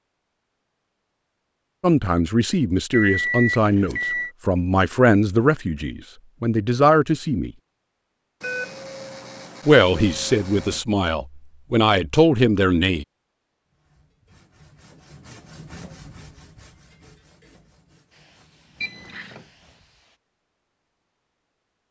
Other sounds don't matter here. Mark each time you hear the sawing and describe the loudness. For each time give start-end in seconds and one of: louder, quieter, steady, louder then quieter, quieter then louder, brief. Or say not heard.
13.7-19.9 louder then quieter.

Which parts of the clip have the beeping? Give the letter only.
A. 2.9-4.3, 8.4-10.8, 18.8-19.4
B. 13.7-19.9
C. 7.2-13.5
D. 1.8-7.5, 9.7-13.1
A.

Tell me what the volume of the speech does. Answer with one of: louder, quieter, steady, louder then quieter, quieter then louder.
steady.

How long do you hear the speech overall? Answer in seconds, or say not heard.
9 s.